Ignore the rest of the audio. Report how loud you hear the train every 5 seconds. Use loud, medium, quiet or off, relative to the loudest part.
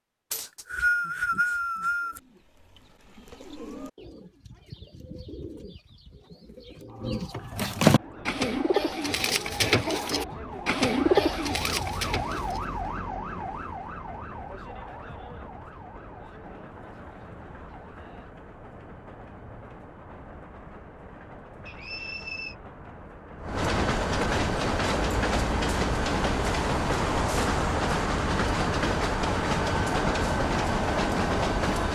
off, quiet, quiet, quiet, medium, loud, loud.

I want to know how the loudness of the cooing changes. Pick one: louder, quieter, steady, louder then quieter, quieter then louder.
louder.